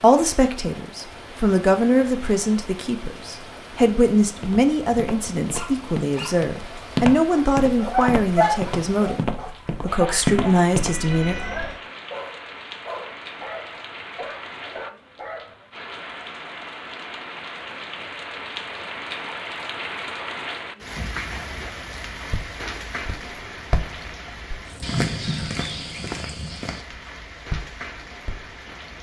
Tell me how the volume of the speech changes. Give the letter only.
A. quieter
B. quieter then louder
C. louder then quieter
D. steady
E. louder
D.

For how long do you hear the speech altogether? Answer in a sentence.
The speech can be heard for 11 seconds in total.